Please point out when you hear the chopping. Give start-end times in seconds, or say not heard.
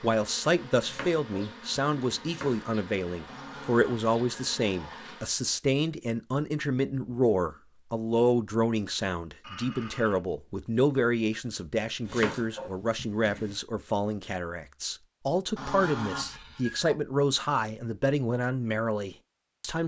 0.8-2.6, 12.1-13.6.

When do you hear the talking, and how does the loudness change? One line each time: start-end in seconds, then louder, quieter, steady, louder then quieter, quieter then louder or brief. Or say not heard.
0.0-19.8 steady.